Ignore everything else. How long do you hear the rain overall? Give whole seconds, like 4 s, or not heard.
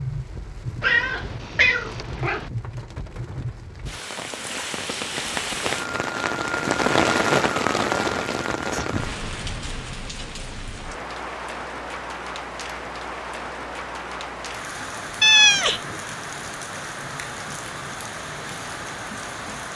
20 s.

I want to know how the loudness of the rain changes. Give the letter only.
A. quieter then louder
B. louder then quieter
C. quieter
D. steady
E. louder
B.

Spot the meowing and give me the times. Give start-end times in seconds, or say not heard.
0.8-2.5, 15.2-15.8.